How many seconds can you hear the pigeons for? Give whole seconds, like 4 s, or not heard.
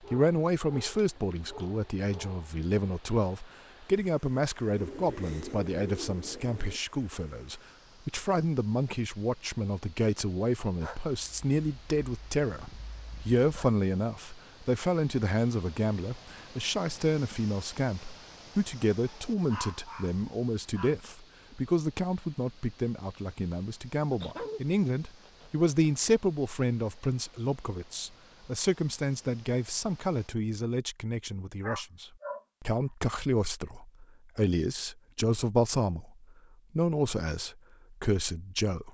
2 s.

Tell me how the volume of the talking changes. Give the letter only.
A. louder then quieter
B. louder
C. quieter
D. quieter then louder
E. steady
E.